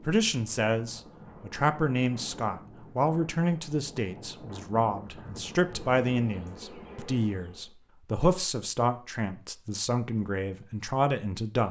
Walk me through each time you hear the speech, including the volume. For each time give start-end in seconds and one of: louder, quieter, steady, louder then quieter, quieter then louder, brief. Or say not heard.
0.0-11.6 steady.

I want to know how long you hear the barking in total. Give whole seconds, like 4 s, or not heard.
not heard.